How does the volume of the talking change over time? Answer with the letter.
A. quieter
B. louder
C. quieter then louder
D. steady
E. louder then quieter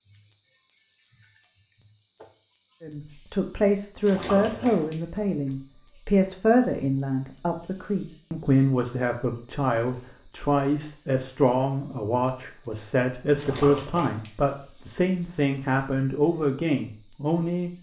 D.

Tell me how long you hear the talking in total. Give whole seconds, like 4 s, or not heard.
15 s.